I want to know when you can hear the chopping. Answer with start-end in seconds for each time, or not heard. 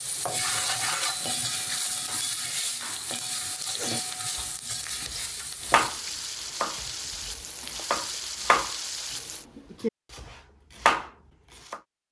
2.0-11.8.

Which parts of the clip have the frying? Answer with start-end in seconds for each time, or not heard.
0.0-9.4.